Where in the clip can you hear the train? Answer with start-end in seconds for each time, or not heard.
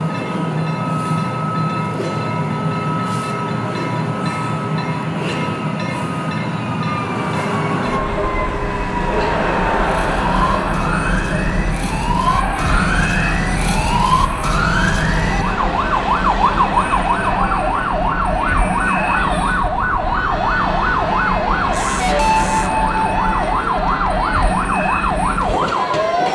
0.0-26.2.